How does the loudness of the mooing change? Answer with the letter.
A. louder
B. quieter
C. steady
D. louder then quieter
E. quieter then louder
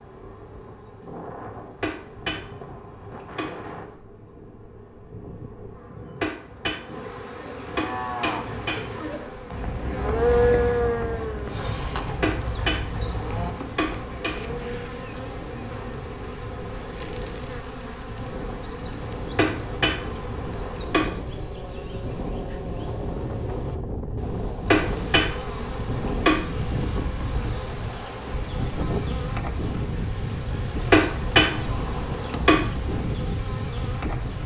D.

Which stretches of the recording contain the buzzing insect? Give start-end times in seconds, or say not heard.
0.0-34.4.